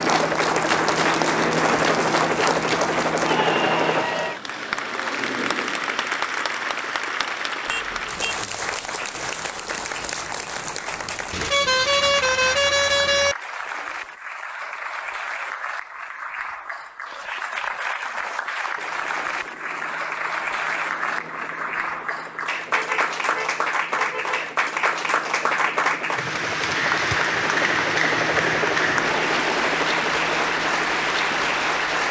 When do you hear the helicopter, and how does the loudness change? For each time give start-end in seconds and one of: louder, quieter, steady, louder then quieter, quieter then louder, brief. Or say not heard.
0.0-4.0 steady
18.8-32.0 louder.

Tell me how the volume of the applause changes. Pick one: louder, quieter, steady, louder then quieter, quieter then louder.
quieter then louder.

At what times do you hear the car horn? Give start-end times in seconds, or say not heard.
7.7-8.4, 11.3-13.3, 22.8-24.4.